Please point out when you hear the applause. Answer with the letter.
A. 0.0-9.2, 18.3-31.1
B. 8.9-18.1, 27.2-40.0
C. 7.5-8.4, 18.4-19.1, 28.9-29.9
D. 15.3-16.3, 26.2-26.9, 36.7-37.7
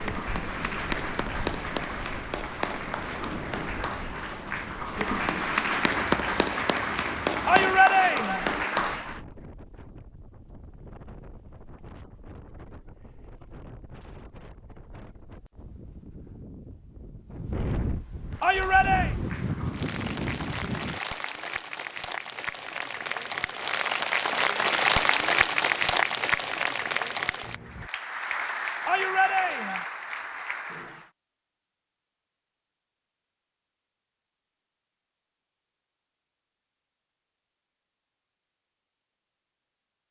A.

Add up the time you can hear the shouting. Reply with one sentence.
You can hear the shouting for 3 seconds altogether.